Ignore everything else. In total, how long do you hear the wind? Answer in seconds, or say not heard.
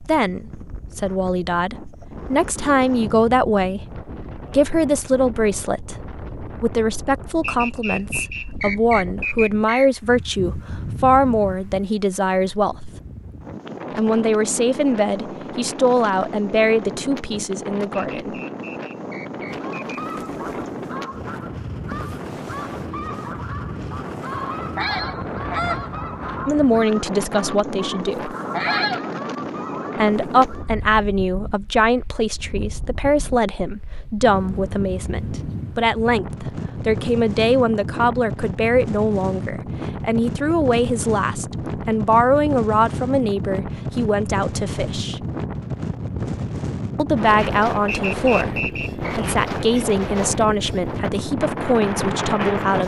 53 s.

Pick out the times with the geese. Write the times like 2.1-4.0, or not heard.
19.4-30.8.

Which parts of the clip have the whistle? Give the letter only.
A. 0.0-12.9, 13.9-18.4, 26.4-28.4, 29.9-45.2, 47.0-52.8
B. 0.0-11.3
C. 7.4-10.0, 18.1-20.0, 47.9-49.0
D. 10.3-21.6
C.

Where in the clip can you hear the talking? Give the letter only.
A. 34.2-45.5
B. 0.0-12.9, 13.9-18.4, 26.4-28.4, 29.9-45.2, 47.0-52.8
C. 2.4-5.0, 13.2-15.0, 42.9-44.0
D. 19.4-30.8
B.